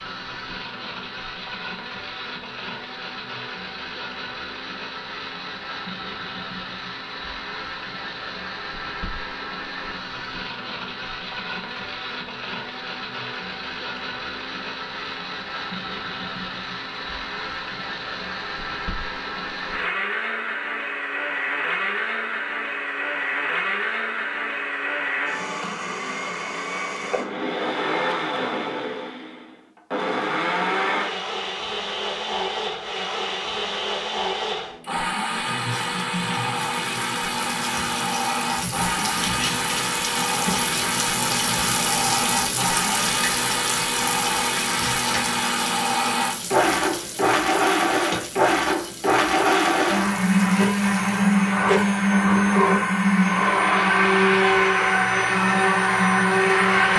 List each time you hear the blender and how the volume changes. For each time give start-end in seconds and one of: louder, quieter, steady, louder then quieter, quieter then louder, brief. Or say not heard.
0.0-56.9 louder.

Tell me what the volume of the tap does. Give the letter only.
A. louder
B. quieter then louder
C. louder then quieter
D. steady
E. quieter
C.